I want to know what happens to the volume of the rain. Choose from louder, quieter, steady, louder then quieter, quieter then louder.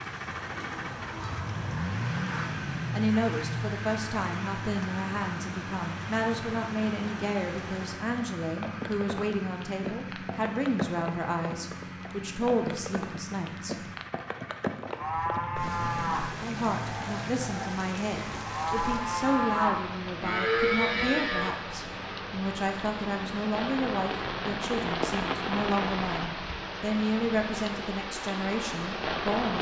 louder.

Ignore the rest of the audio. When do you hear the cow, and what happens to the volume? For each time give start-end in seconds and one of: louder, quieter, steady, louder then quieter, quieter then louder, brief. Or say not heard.
14.9-21.5 quieter then louder.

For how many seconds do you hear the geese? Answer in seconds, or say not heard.
2 s.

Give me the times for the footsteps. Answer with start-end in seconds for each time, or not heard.
not heard.